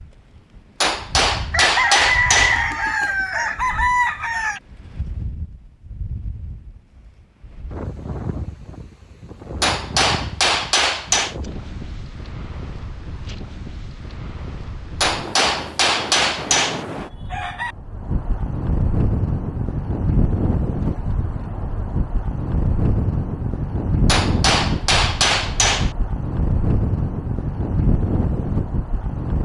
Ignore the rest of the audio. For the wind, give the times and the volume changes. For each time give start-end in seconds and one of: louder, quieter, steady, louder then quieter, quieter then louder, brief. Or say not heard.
0.0-29.3 louder.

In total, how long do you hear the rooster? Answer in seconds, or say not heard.
4 s.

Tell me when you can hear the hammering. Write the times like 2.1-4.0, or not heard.
0.8-2.6, 9.6-11.3, 15.0-16.9, 24.1-25.9.